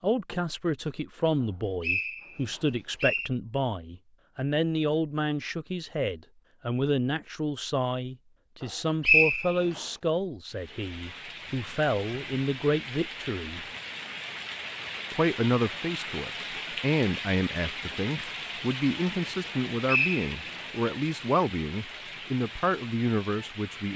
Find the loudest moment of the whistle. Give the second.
9 s.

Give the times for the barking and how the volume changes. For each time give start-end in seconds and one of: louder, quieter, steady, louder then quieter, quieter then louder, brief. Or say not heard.
not heard.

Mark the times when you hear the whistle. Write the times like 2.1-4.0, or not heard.
1.4-3.3, 9.0-9.8, 19.4-20.6.